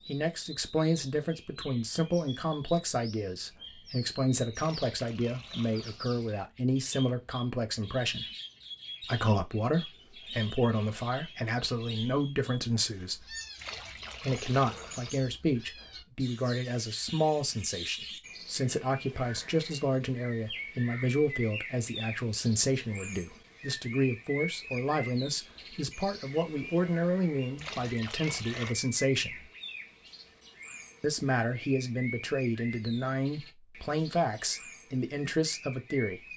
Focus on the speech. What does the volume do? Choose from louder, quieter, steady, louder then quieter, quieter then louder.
steady.